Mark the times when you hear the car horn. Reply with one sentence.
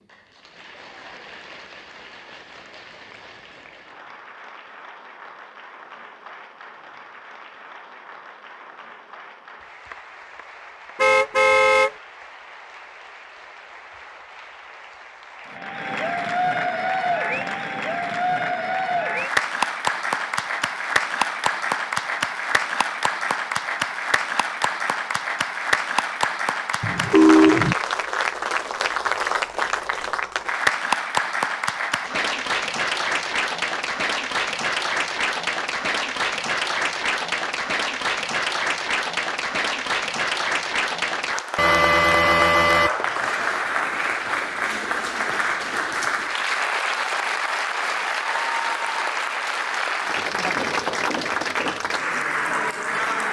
The car horn can be heard from 10.9 to 11.9 s, from 26.8 to 27.8 s and from 41.5 to 43.0 s.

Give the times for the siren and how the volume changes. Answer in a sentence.
The siren can't be heard in this clip.